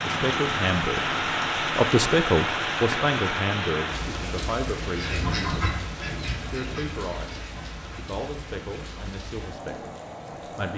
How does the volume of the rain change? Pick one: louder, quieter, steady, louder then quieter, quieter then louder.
quieter.